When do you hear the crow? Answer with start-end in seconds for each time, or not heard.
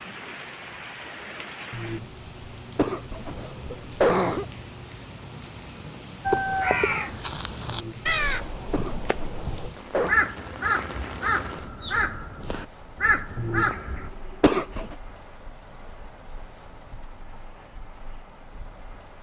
6.2-14.1.